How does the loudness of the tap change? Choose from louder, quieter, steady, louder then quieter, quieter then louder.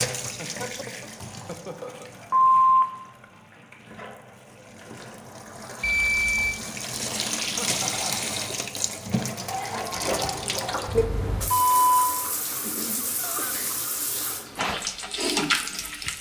louder.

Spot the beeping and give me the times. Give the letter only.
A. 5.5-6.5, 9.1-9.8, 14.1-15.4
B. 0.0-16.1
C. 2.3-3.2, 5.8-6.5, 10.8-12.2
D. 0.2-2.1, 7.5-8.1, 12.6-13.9
C.